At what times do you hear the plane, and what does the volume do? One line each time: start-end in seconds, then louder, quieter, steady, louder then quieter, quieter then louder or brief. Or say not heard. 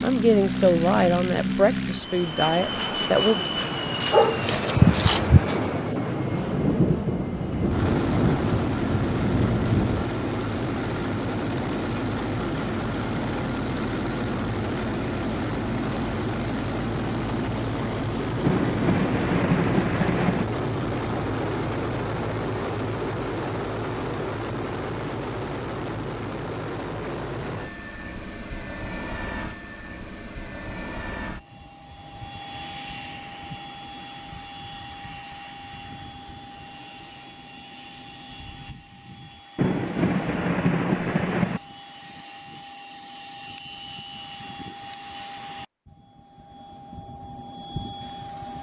0.0-48.5 quieter.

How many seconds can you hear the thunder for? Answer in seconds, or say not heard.
8 s.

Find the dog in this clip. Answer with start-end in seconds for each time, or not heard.
4.0-5.6.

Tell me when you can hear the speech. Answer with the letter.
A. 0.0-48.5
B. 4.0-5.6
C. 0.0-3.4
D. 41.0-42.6
C.